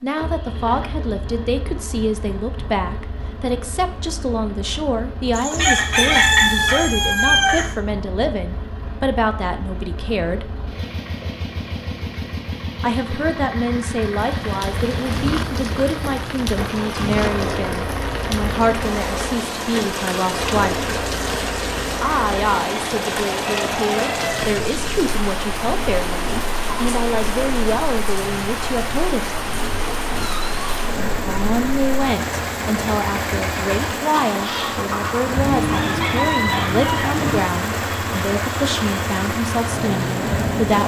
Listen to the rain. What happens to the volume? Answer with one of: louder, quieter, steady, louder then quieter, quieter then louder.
steady.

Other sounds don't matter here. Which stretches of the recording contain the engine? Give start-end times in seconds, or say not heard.
0.0-40.8.